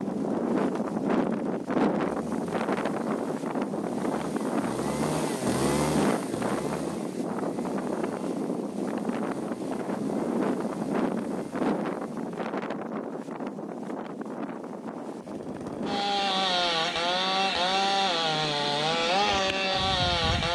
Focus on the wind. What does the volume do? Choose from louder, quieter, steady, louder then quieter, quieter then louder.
quieter.